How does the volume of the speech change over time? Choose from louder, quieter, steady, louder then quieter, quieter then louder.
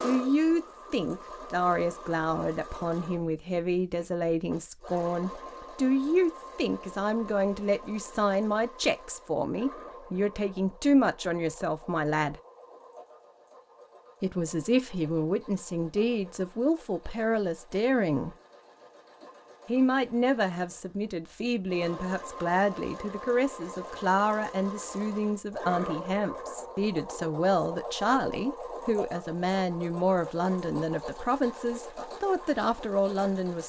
steady.